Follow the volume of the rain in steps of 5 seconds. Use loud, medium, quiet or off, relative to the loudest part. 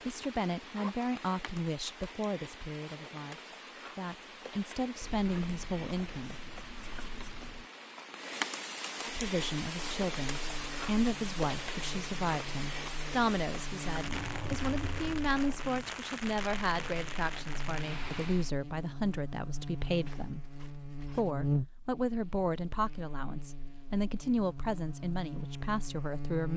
medium, loud, loud, loud, off, off.